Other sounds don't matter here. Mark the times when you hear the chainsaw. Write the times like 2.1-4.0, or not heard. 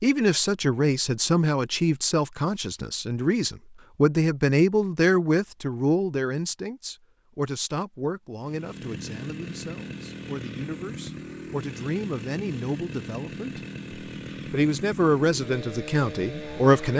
8.3-16.9.